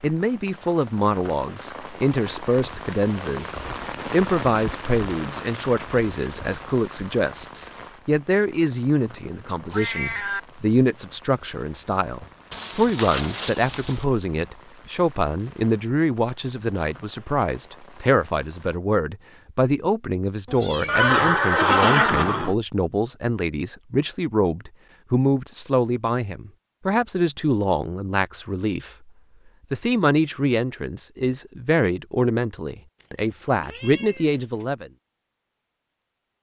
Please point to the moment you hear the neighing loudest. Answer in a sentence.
The loudest moment of the neighing is at 22 seconds.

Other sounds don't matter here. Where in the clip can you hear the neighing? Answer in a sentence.
You can hear the neighing from 12.5 to 14.1 s and from 20.9 to 22.6 s.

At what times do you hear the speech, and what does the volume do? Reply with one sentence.
The speech can be heard from 0.0 to 29.1 s, at a steady volume; and from 29.7 to 34.9 s, at a steady volume.